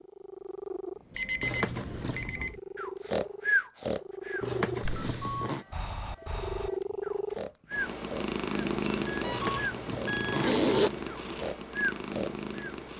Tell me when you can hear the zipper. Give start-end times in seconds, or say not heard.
1.4-2.3, 4.4-5.7, 9.2-10.9.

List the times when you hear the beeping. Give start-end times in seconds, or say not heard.
1.1-2.5, 4.8-6.8, 8.8-10.6.